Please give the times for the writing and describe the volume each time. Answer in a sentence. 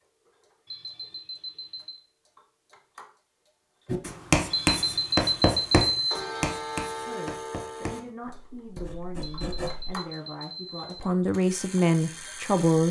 You can hear the writing from 3.9 to 9.9 s, getting quieter.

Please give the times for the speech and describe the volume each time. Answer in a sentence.
The speech can be heard from 7.0 to 12.8 s, getting louder.